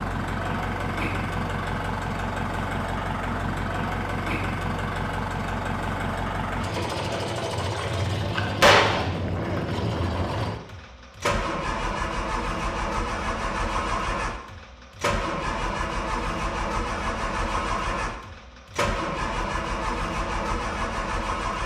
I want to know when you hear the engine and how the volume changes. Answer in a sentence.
You can hear the engine from 0.0 to 21.6 s, at a steady volume.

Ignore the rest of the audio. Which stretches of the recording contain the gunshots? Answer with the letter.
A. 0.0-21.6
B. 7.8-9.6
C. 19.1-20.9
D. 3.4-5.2
B.